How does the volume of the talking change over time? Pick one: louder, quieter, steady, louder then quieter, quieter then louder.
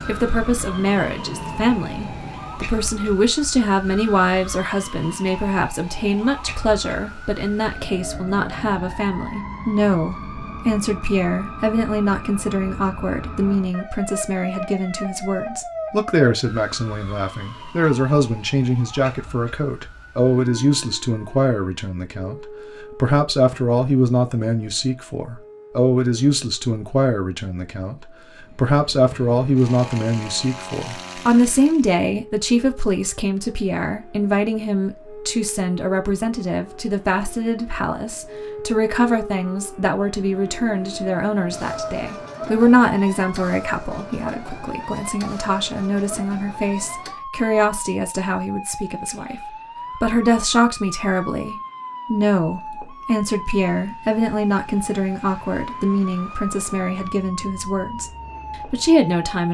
steady.